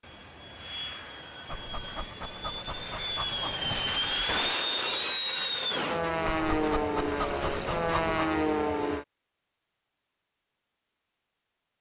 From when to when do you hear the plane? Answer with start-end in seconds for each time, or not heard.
0.0-9.1.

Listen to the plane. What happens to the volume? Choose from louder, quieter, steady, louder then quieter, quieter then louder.
louder.